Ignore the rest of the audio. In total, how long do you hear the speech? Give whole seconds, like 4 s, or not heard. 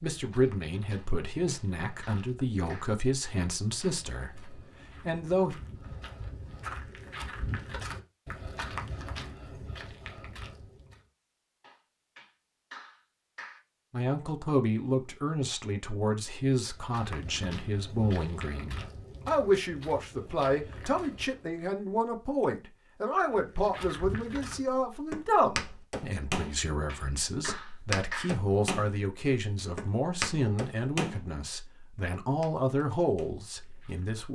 26 s.